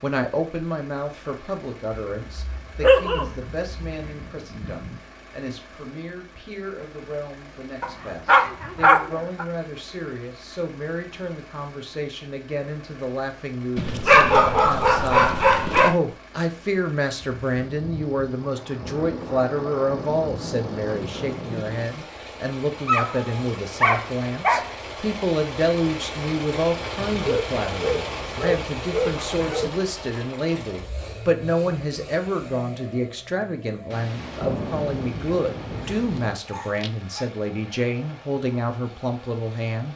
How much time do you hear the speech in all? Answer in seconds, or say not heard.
40 s.